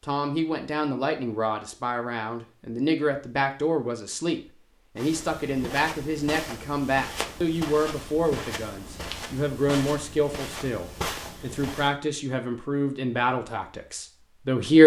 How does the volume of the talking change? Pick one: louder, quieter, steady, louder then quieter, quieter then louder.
steady.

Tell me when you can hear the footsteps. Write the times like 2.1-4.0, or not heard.
5.0-11.9.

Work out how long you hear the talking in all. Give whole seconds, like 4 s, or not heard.
15 s.